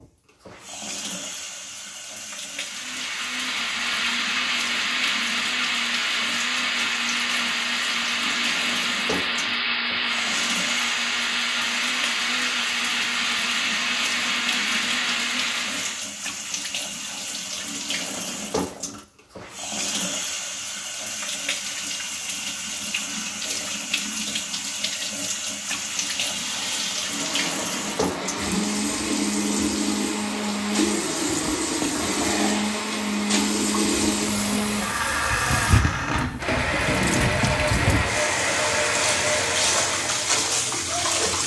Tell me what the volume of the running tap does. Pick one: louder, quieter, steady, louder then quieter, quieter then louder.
louder.